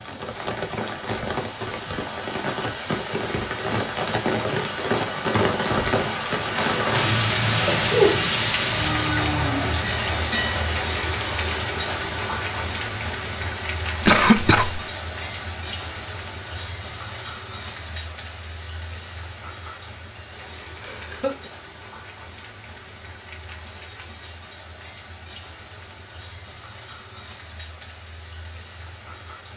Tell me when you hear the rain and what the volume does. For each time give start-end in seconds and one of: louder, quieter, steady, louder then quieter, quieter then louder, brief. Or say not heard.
0.0-29.5 quieter.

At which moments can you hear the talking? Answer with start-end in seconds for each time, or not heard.
not heard.